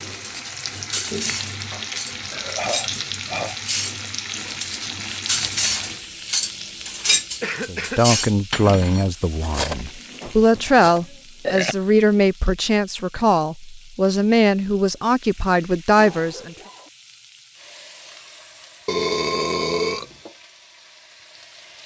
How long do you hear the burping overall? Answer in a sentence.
You can hear the burping for 4 seconds altogether.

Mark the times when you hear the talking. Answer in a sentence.
The talking can be heard from 7.7 to 16.6 s.